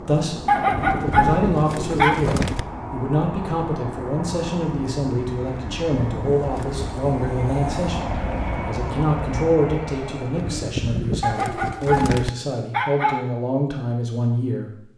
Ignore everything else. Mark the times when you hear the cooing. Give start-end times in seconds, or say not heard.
0.7-2.6, 5.5-6.8, 10.3-12.3.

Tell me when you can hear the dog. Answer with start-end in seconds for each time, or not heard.
0.5-2.3, 11.2-13.2.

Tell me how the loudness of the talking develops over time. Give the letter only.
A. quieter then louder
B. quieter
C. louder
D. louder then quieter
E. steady
E.